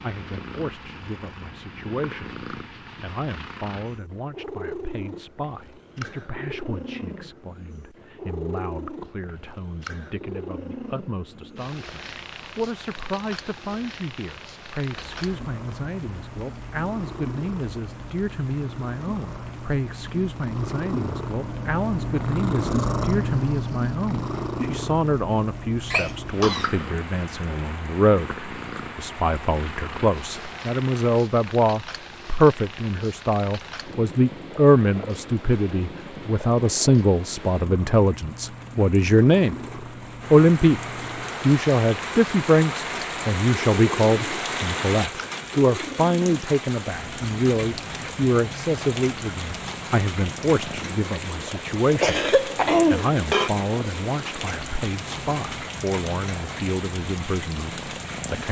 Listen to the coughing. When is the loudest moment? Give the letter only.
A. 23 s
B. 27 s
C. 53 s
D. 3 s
C.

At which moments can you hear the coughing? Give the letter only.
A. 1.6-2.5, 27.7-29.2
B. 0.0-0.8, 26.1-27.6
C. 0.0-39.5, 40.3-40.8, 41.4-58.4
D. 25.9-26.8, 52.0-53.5
D.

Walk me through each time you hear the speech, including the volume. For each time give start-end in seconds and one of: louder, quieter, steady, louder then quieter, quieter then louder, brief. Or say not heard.
0.0-39.5 louder
40.3-40.8 brief
41.4-58.4 quieter.